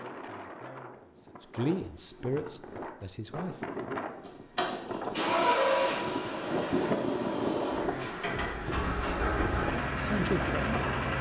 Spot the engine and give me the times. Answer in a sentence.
You can hear the engine from 4.2 to 11.1 s.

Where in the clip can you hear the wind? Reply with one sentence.
The wind can be heard from 0.0 to 11.1 s.